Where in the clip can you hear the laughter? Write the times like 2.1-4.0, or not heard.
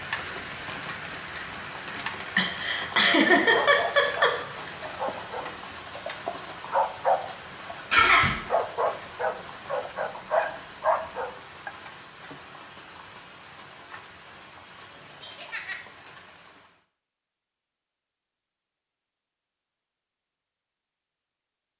2.4-4.8, 7.9-8.4, 15.2-15.8.